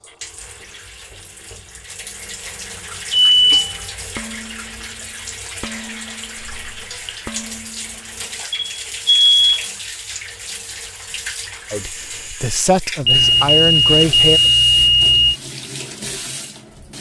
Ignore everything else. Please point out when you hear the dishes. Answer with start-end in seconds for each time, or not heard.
3.5-8.4.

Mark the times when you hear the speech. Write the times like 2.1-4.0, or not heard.
11.7-14.4.